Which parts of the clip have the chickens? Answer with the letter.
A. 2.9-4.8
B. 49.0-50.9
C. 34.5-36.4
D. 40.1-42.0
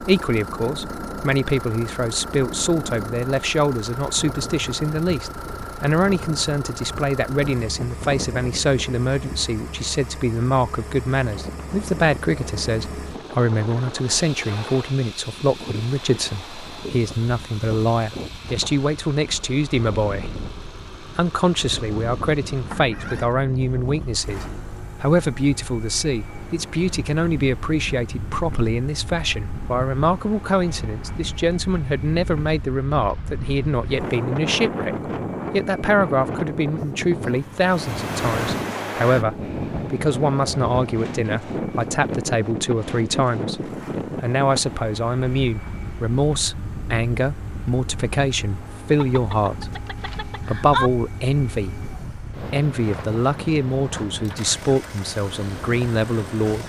B.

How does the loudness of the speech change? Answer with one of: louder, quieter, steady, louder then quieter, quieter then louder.
steady.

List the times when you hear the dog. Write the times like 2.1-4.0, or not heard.
not heard.